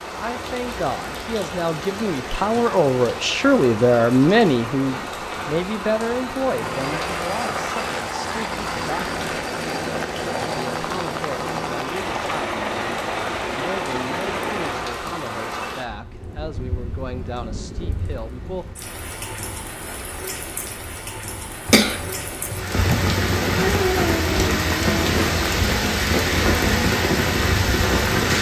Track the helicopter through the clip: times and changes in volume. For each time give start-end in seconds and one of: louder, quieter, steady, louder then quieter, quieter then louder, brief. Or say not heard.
6.5-14.9 steady.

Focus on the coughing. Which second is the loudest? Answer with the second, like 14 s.
22 s.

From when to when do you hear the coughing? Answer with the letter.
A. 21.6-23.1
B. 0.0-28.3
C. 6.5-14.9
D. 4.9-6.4
A.